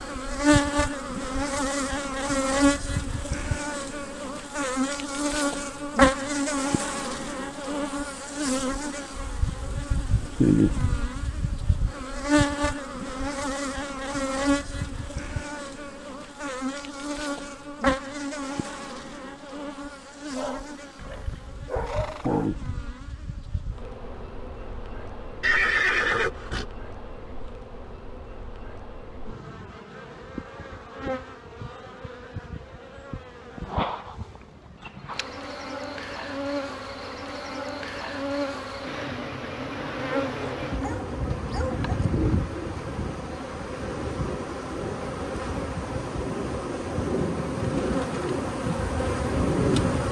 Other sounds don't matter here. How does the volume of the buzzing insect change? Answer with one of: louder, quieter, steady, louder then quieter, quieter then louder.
quieter then louder.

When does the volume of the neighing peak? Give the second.
26 s.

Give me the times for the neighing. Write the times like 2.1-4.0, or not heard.
20.9-22.3, 25.4-26.6.